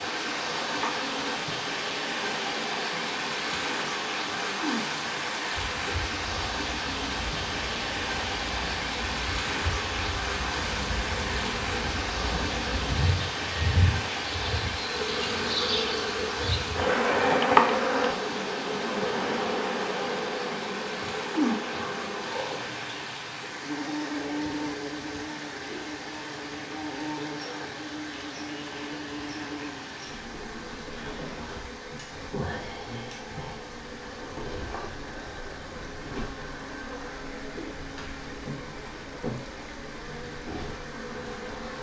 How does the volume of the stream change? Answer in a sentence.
The loudness of the stream goes down.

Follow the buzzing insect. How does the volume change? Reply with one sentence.
The loudness of the buzzing insect goes up, then down.